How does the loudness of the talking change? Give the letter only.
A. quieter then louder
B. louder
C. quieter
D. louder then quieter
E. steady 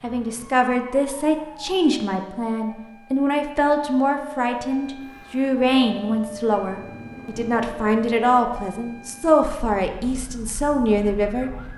E.